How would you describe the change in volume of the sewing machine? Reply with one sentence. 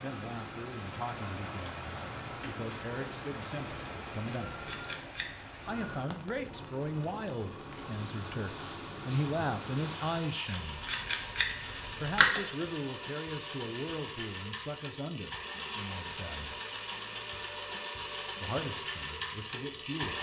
The loudness of the sewing machine goes up.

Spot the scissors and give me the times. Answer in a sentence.
You can hear the scissors from 4.2 to 5.6 s and from 10.4 to 12.4 s.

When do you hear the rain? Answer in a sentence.
You can hear the rain from 0.0 to 10.6 s.